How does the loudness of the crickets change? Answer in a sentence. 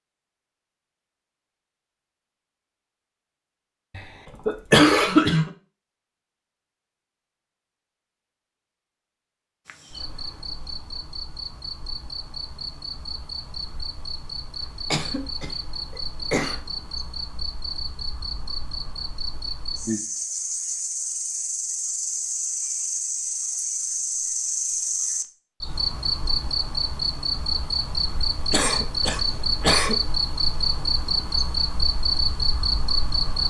The loudness of the crickets goes up.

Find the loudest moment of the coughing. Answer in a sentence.
The loudest moment of the coughing is at 5 seconds.